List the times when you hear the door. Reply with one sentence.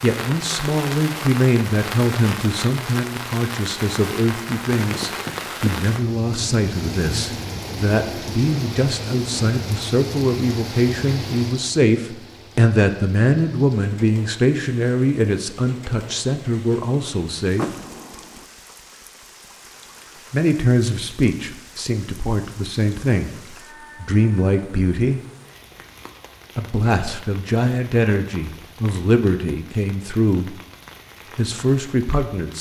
You can hear the door from 17.6 to 18.4 s.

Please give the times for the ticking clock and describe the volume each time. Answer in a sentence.
You can't hear the ticking clock here.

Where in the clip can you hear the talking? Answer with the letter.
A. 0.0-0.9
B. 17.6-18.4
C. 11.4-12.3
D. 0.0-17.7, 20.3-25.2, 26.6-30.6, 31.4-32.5
D.